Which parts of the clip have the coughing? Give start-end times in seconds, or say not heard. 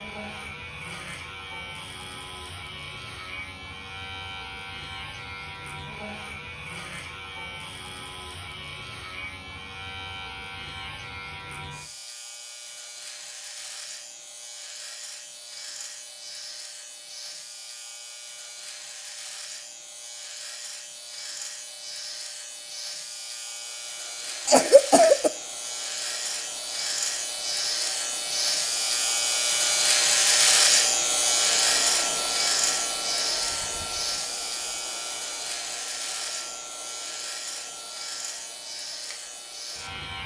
24.4-25.3.